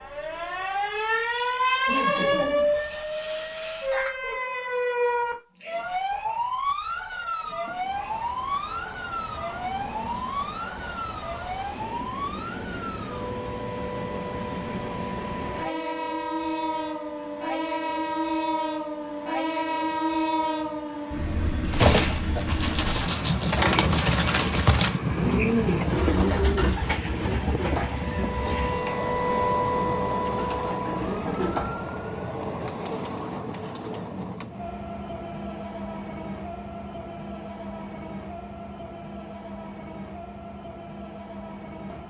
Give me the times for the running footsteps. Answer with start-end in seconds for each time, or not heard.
not heard.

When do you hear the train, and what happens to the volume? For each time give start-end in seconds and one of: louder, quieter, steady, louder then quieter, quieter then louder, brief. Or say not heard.
7.5-42.0 louder then quieter.